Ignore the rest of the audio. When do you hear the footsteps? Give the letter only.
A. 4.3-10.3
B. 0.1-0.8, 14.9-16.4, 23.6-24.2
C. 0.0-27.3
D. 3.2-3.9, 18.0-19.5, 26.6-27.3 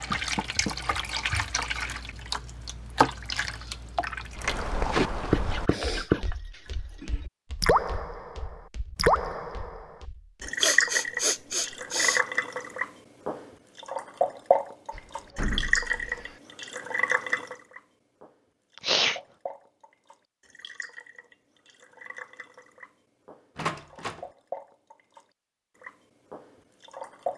A.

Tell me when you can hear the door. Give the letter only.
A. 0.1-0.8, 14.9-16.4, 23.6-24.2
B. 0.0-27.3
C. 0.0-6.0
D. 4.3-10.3
A.